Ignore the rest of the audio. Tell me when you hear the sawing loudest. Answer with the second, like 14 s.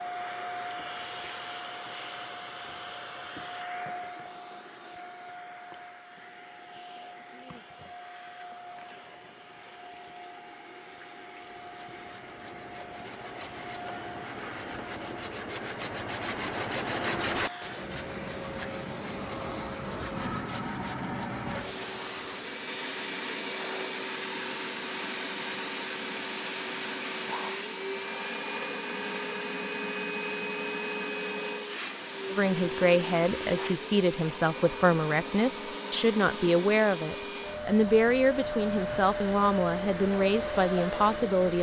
17 s.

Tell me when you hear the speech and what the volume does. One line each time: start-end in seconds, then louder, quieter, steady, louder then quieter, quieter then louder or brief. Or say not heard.
32.3-41.5 steady.